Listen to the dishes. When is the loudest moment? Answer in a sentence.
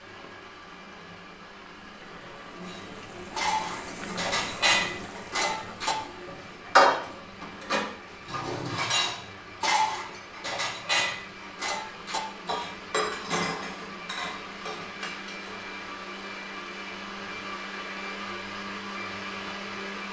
The loudest moment of the dishes is at 7 seconds.